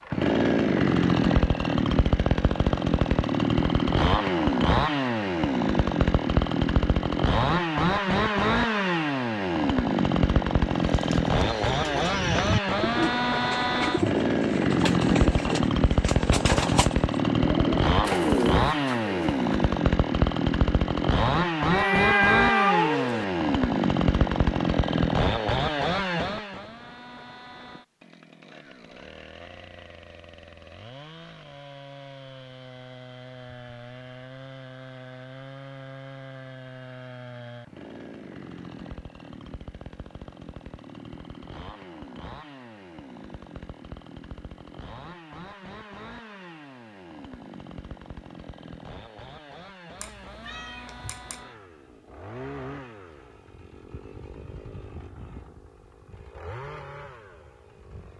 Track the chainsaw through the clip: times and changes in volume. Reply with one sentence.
The chainsaw can be heard from 0.0 to 58.1 s, getting quieter.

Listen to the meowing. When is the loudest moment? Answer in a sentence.
The loudest moment of the meowing is at 22 seconds.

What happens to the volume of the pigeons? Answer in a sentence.
The volume of the pigeons stays about the same.